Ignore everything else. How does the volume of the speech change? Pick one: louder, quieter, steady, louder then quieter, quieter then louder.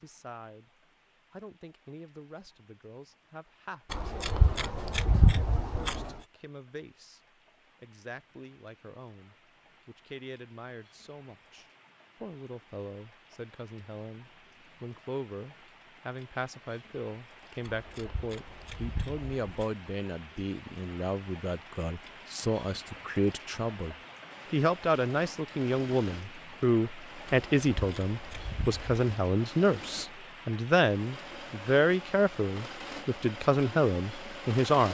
louder.